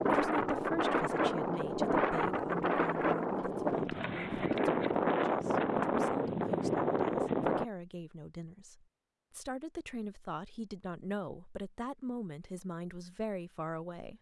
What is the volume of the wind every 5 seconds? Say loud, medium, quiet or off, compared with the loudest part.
loud, loud, off.